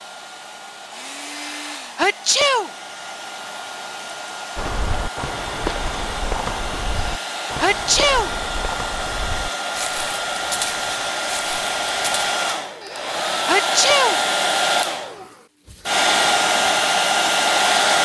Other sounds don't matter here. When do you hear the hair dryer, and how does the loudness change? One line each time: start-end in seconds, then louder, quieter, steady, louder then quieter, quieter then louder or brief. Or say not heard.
0.0-17.9 louder.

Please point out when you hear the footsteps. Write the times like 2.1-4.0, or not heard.
4.5-12.3.